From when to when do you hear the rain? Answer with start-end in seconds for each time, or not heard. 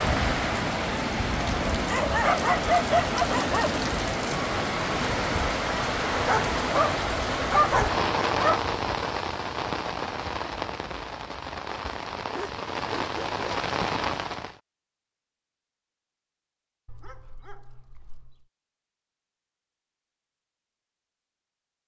0.0-14.6.